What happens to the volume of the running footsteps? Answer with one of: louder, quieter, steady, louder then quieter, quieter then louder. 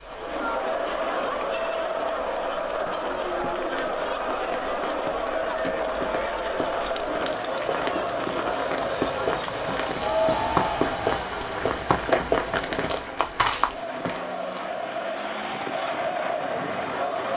louder.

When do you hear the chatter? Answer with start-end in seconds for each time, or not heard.
0.0-17.3.